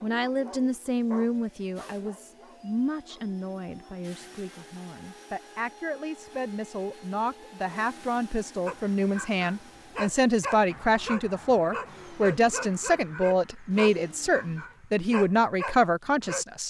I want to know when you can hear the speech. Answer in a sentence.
The speech can be heard from 0.0 to 16.6 s.